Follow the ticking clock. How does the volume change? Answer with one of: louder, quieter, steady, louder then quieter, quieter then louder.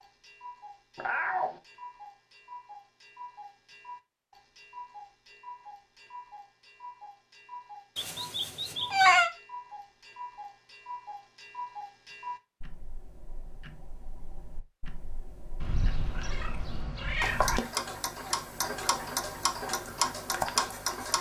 louder.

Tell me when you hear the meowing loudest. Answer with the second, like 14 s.
9 s.